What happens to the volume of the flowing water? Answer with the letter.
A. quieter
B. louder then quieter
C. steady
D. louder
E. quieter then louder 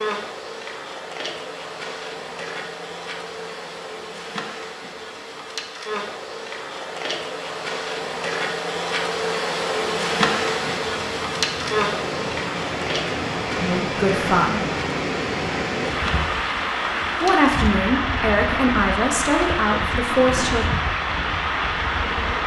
D.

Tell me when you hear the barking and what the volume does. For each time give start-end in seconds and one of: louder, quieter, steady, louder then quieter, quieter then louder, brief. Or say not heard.
not heard.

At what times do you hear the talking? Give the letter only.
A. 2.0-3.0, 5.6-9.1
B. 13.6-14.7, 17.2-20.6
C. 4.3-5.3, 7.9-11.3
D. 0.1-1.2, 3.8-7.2
B.